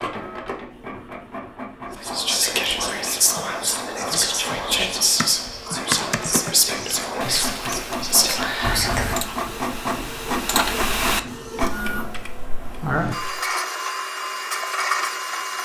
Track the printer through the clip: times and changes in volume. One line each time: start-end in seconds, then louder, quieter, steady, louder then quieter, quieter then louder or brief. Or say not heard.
0.0-15.6 louder.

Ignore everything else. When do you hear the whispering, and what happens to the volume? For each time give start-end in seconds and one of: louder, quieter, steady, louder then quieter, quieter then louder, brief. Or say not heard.
1.9-9.3 steady.